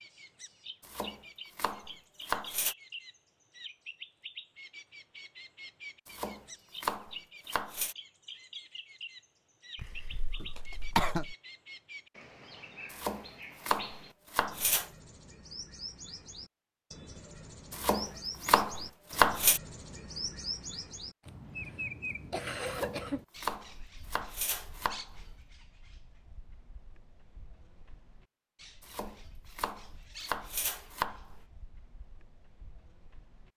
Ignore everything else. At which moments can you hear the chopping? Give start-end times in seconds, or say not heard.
0.8-2.8, 6.0-8.0, 12.9-14.9, 17.7-19.6, 22.6-25.3, 28.8-31.4.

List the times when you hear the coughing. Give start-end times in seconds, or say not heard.
9.8-11.3, 21.2-23.2.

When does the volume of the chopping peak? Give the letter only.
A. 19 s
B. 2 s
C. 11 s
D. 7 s
A.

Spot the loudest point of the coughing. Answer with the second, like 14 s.
11 s.